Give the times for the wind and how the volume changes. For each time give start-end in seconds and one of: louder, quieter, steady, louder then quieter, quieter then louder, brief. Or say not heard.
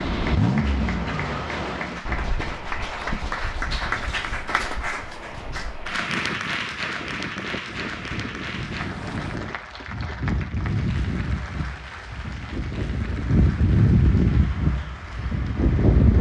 0.0-16.1 quieter then louder.